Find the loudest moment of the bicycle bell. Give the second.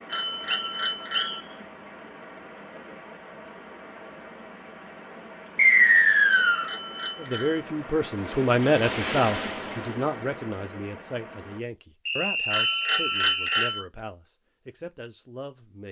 13 s.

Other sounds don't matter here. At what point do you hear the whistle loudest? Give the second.
6 s.